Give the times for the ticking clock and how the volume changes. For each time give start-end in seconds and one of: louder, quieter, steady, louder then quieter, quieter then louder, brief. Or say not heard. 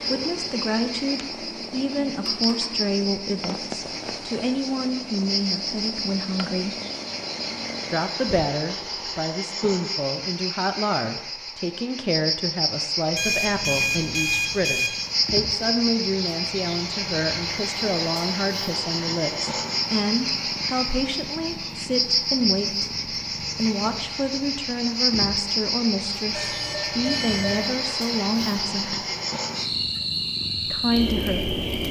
not heard.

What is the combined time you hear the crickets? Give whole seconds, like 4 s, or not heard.
32 s.